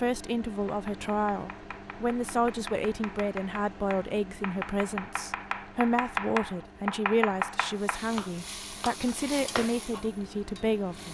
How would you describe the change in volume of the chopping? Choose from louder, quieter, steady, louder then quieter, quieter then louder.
louder then quieter.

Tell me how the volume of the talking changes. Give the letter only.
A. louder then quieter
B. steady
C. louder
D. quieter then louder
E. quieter
B.